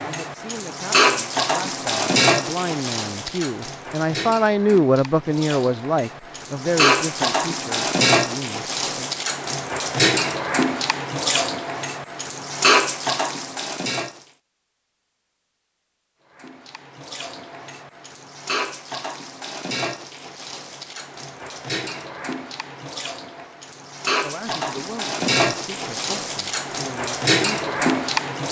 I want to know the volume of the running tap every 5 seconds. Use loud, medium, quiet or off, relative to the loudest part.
loud, loud, loud, medium, medium, loud.